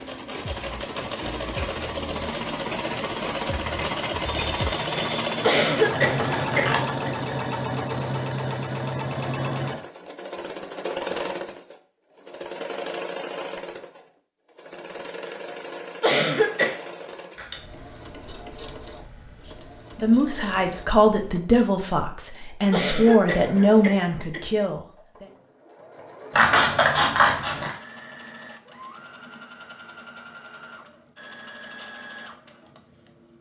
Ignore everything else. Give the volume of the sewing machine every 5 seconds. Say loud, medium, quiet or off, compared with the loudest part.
loud, loud, medium, quiet, quiet, quiet, quiet.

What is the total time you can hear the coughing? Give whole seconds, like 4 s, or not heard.
4 s.